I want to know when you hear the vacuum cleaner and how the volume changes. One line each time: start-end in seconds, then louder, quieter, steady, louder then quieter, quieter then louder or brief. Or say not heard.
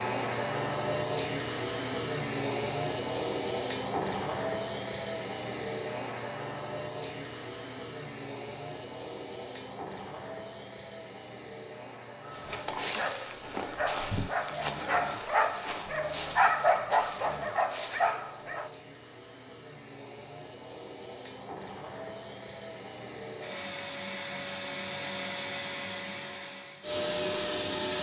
0.0-27.9 quieter then louder.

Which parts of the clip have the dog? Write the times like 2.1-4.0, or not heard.
12.2-18.7.